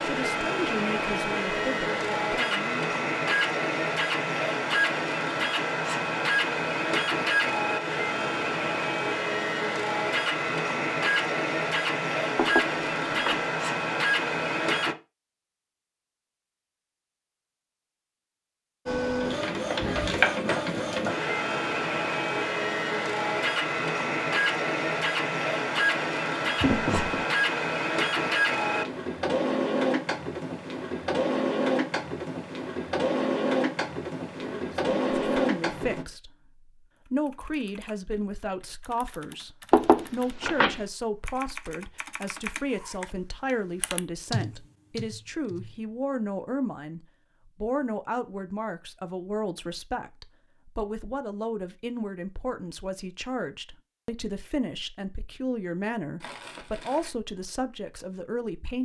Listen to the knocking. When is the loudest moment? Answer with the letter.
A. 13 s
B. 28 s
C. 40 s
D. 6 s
C.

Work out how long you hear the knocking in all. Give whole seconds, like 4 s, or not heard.
3 s.